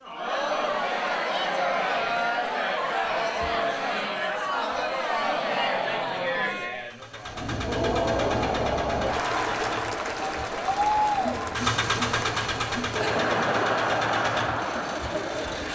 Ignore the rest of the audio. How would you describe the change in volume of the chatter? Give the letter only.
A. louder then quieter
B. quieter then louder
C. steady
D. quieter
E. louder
C.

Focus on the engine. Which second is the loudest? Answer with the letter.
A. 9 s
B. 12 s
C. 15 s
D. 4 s
B.